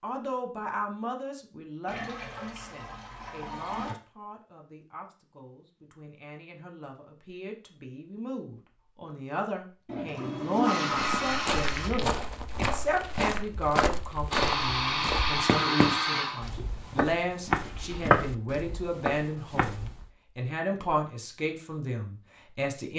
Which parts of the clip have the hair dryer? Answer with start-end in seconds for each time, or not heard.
14.3-16.5.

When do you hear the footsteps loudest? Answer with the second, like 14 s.
18 s.